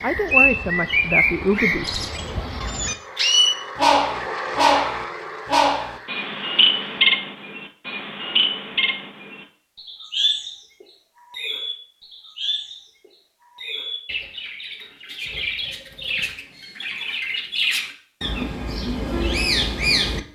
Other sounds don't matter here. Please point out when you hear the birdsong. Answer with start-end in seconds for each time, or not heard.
0.0-20.2.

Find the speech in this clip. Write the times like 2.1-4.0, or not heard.
0.0-2.2.